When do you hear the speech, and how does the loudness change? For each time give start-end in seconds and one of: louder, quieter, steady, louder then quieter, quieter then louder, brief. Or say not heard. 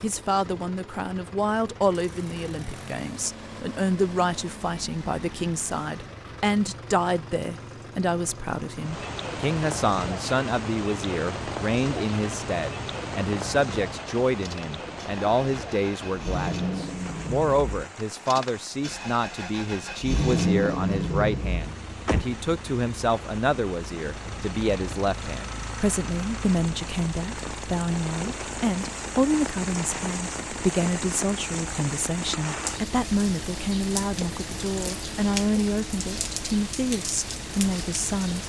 0.0-38.4 steady.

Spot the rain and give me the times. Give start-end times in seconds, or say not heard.
8.8-38.4.